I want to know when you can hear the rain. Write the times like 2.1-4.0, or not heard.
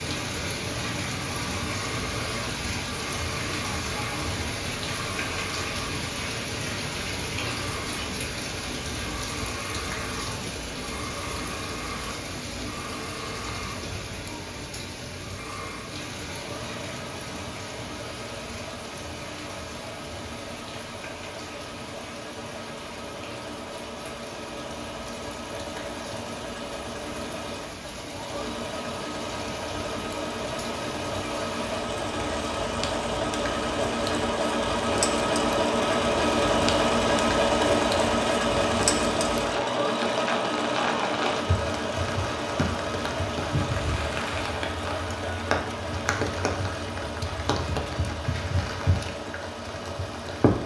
0.0-50.6.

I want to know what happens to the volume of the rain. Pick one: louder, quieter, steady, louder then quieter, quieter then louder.
quieter then louder.